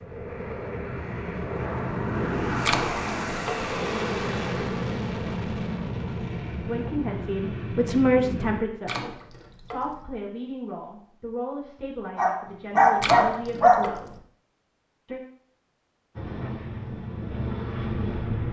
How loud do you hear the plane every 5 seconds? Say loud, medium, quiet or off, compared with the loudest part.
loud, loud, off, loud.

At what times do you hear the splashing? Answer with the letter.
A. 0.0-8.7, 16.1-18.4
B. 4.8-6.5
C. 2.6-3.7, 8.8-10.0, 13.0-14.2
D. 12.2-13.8
C.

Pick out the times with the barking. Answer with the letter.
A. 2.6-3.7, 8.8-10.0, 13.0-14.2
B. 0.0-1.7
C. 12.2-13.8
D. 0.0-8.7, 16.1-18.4
C.